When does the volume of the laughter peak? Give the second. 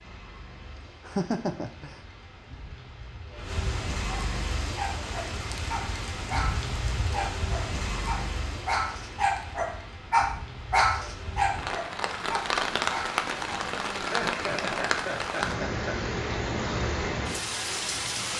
1 s.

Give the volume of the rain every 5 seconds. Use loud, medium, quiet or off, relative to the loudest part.
medium, medium, loud, loud.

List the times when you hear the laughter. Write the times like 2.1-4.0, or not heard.
0.6-2.0, 13.9-16.0.